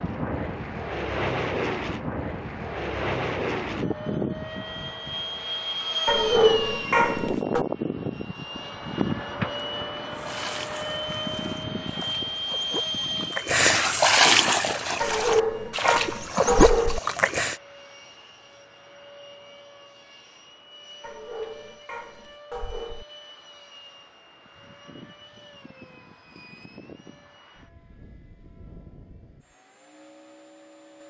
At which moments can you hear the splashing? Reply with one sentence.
The splashing can be heard from 10.1 to 17.6 s.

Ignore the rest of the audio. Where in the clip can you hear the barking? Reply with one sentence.
You can hear the barking from 6.0 to 7.7 s, from 15.0 to 17.0 s and from 21.0 to 23.1 s.